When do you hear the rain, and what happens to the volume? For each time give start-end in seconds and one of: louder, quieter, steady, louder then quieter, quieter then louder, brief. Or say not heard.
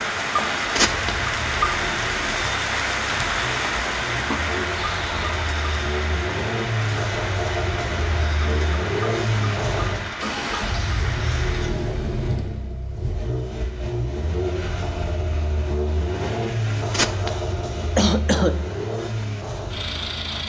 0.0-12.8 quieter.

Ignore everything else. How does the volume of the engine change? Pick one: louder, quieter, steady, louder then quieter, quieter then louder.
louder.